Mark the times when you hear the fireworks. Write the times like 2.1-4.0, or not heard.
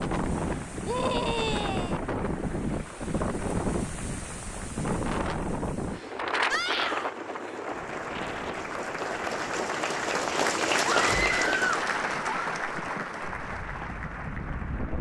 not heard.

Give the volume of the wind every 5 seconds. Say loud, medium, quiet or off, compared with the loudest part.
loud, loud, medium.